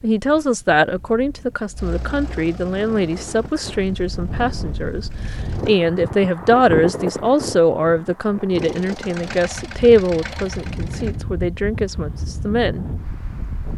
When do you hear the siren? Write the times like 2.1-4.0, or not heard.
not heard.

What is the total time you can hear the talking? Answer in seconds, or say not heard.
13 s.